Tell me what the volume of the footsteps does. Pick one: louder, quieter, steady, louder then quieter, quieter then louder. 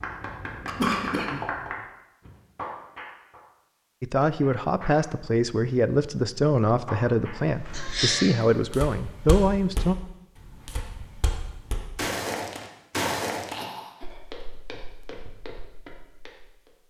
louder then quieter.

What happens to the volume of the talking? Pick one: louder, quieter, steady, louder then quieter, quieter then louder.
steady.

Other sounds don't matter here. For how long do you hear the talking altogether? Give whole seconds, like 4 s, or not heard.
6 s.